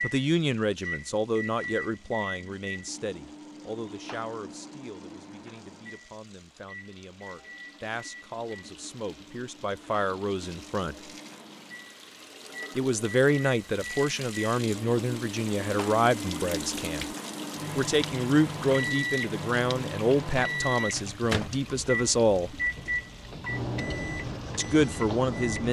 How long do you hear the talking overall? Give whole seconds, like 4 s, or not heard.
21 s.